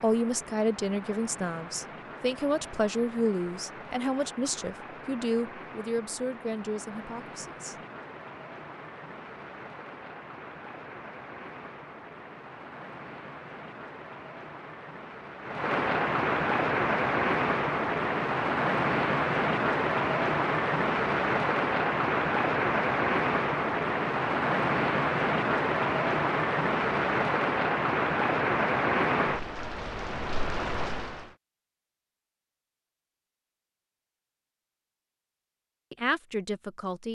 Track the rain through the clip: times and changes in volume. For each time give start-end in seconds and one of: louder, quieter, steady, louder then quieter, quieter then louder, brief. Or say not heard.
0.0-31.4 louder.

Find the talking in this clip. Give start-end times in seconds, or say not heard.
0.0-7.8, 35.9-37.0.